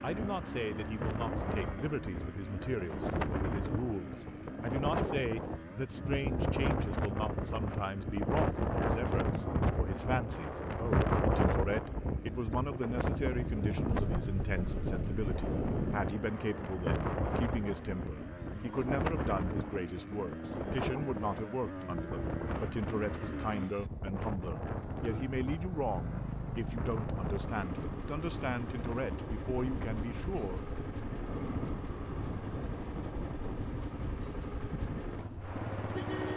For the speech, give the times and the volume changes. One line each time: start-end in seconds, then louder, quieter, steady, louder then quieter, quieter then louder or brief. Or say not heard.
0.0-30.6 steady.